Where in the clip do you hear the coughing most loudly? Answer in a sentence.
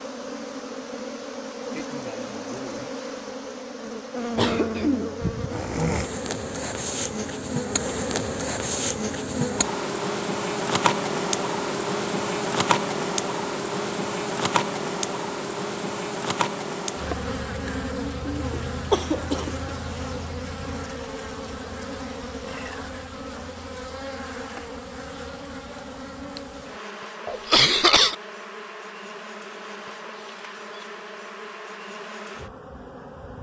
The volume of the coughing peaks at 28 seconds.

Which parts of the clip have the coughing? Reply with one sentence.
The coughing can be heard from 4.3 to 6.1 s, from 17.6 to 19.7 s and from 27.2 to 28.1 s.